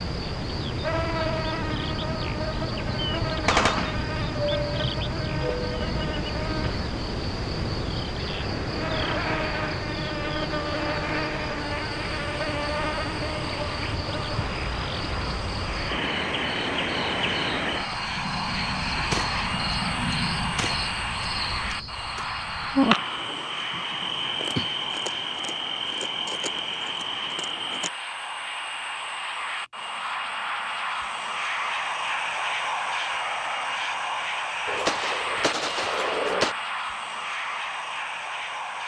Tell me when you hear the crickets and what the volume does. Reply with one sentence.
You can hear the crickets from 0.0 to 27.9 s, at a steady volume.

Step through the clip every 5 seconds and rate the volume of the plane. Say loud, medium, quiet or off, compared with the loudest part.
medium, medium, medium, loud, loud, medium, loud, loud.